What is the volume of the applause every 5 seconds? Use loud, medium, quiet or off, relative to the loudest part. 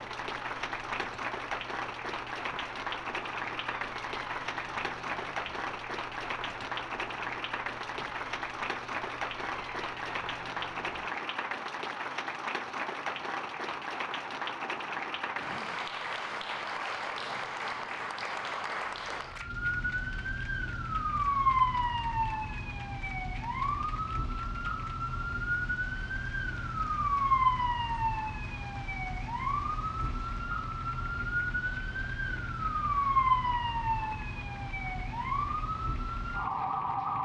loud, loud, loud, loud, quiet, quiet, quiet, quiet.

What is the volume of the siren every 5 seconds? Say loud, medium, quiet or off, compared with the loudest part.
quiet, quiet, quiet, medium, loud, loud, loud, loud.